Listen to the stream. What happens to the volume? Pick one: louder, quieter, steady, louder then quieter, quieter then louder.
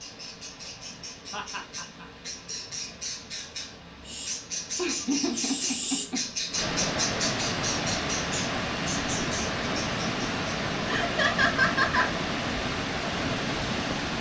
louder.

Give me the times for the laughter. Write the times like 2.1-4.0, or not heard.
1.3-2.0, 4.8-6.2, 10.8-12.1.